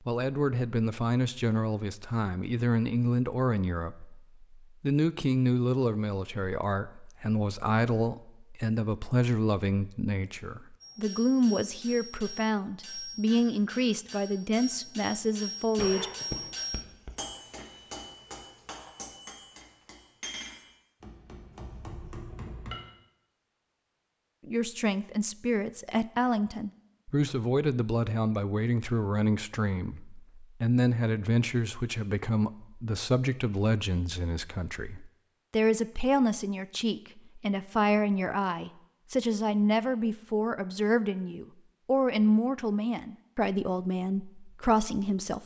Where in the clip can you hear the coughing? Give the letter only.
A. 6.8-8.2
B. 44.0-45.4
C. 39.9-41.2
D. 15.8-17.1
D.